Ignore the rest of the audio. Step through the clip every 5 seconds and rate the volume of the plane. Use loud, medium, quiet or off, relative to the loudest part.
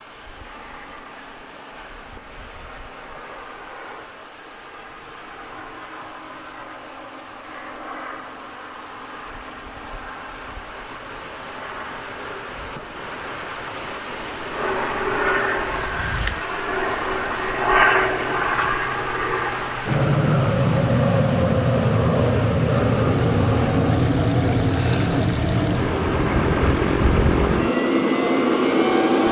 quiet, quiet, quiet, loud, loud, loud.